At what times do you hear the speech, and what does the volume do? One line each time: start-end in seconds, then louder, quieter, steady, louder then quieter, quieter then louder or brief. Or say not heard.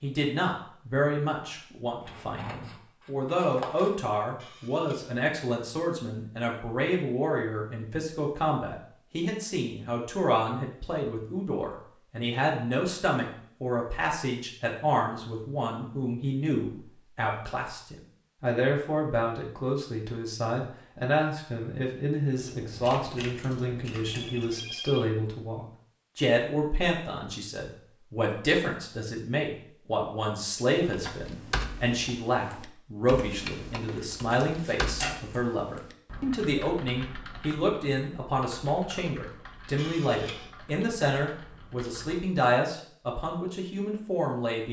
0.0-44.6 steady.